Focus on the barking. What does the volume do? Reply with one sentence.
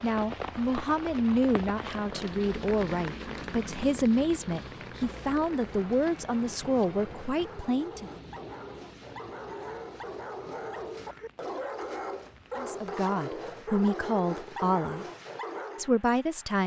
The loudness of the barking goes up.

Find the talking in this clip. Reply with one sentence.
You can hear the talking from 0.0 to 8.1 s, from 12.6 to 15.1 s and from 15.8 to 16.6 s.